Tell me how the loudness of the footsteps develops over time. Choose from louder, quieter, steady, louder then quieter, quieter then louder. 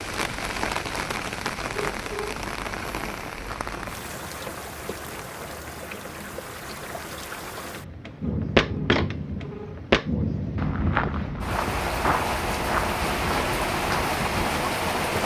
quieter.